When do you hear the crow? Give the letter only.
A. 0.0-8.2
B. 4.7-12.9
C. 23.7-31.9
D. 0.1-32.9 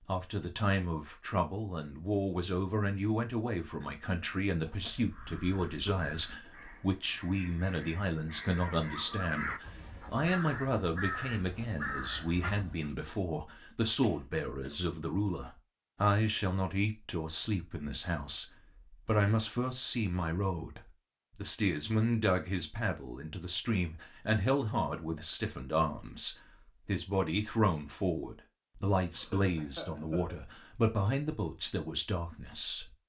B.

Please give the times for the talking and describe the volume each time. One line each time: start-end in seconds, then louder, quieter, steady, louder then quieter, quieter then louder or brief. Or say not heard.
0.1-32.9 steady.